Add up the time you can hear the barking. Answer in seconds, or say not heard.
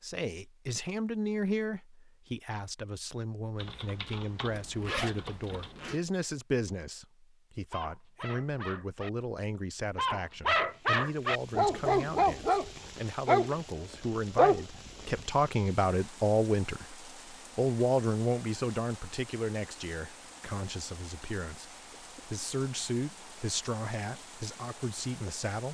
6 s.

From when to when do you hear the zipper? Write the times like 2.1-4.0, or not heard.
4.5-6.0.